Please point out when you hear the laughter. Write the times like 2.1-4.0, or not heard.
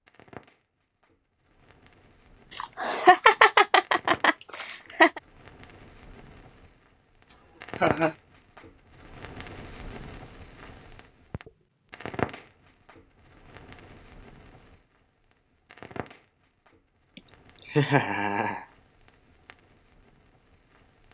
2.5-5.2, 7.3-8.2, 17.1-18.6.